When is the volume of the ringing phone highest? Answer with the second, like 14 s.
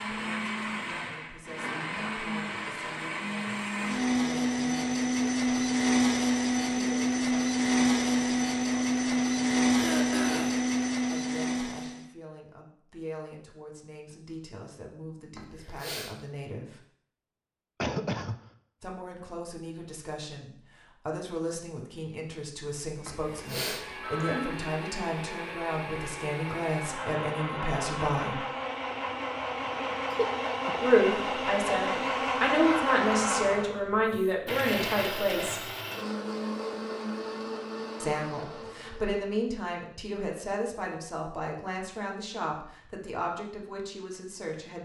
24 s.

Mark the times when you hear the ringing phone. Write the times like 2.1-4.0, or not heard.
15.3-16.2, 23.1-24.6.